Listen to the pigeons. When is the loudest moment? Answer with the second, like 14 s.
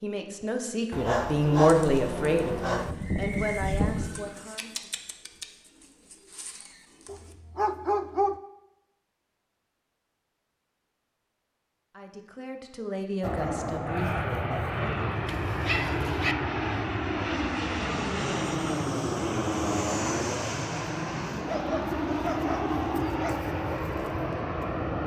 4 s.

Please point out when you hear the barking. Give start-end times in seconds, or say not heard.
0.9-3.0, 7.0-8.4, 15.2-16.4, 21.4-23.4.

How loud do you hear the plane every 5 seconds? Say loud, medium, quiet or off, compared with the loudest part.
off, off, loud, loud, loud.